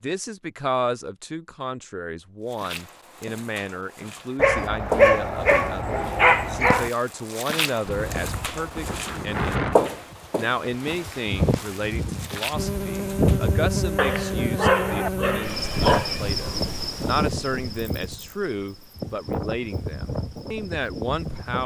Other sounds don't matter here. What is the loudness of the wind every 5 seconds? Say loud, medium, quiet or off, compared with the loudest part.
off, loud, loud, loud, medium.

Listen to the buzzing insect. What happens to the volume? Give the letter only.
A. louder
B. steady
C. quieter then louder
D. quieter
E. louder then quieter
D.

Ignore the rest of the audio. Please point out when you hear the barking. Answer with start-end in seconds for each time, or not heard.
4.3-6.9, 13.9-16.1.